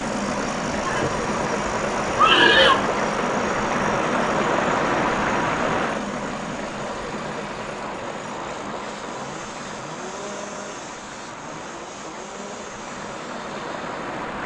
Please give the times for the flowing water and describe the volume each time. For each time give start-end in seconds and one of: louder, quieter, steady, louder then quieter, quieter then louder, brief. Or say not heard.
0.0-14.4 quieter.